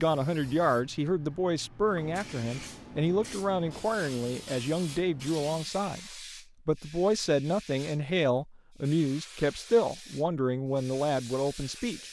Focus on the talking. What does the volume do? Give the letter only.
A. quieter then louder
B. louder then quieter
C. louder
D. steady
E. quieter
D.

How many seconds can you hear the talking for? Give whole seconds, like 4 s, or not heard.
12 s.